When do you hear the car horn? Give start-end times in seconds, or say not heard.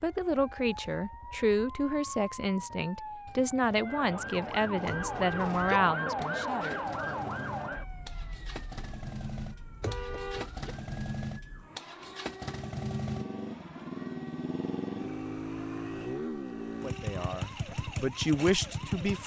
4.8-5.8, 9.8-10.8.